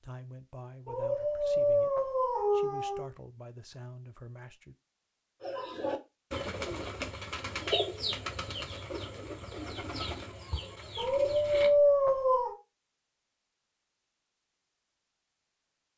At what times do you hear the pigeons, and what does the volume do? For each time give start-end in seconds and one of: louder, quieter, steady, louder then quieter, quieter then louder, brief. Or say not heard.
5.4-11.7 quieter.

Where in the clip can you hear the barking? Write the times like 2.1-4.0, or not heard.
0.8-3.1, 10.9-12.6.